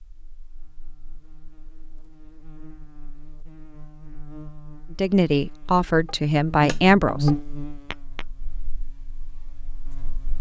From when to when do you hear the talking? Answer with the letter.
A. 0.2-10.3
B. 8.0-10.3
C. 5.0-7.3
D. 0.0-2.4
C.